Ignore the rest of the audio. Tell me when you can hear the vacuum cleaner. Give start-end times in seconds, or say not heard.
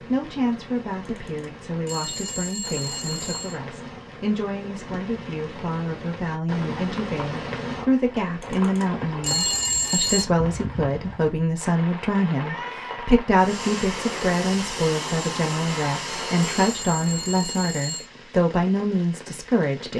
13.3-16.9.